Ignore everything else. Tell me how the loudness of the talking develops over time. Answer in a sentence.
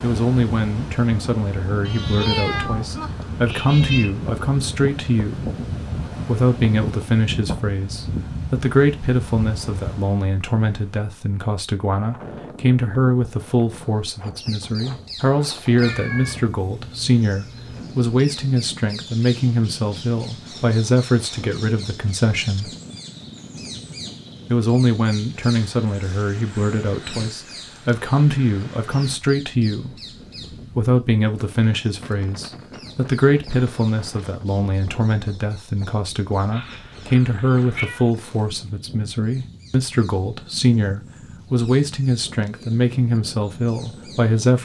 The loudness of the talking stays about the same.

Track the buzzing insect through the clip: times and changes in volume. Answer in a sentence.
You can't hear the buzzing insect here.